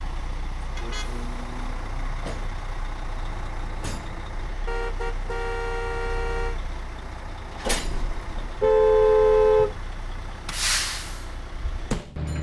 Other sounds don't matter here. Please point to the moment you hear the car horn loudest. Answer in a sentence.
The volume of the car horn peaks at 9 seconds.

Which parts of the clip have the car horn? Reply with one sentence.
The car horn can be heard from 0.8 to 2.1 s, from 4.7 to 6.5 s and from 8.6 to 9.8 s.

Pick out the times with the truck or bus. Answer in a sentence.
You can hear the truck or bus from 0.0 to 12.3 s.